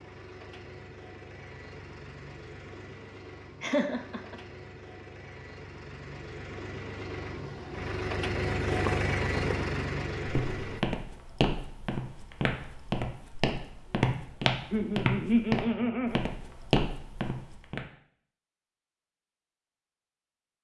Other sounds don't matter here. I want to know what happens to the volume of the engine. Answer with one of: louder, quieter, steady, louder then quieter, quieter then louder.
louder.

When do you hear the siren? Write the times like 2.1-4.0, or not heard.
not heard.